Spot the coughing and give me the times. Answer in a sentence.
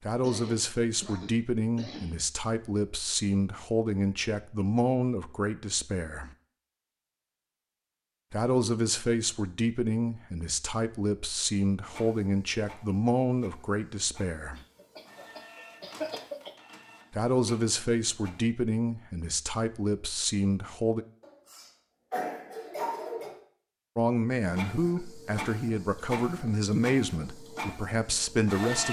You can hear the coughing from 0.2 to 2.2 s, from 14.6 to 16.5 s and from 21.2 to 23.4 s.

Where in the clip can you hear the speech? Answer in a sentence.
You can hear the speech from 0.0 to 6.3 s, from 8.3 to 14.6 s, from 17.1 to 21.1 s and from 23.9 to 28.8 s.